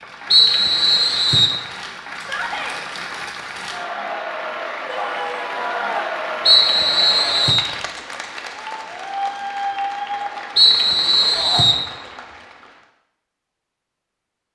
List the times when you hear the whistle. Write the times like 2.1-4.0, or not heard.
0.3-1.6, 6.5-7.7, 10.6-11.8.